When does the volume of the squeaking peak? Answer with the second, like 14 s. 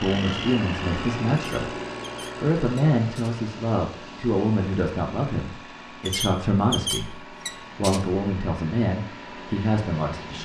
7 s.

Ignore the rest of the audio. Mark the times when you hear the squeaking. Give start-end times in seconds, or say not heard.
1.4-3.4, 6.0-8.1.